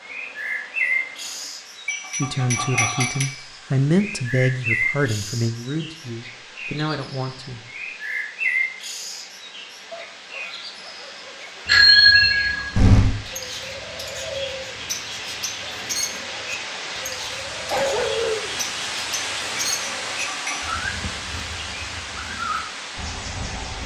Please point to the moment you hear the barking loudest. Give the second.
18 s.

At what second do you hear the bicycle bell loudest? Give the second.
12 s.